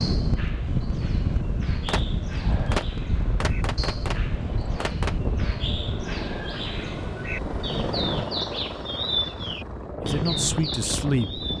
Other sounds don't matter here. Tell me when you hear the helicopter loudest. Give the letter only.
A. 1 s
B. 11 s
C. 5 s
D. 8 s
D.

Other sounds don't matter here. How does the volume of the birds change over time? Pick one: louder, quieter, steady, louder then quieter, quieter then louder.
louder.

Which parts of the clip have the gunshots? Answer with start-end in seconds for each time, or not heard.
1.9-5.2.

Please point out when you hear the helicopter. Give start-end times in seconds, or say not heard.
0.2-11.5.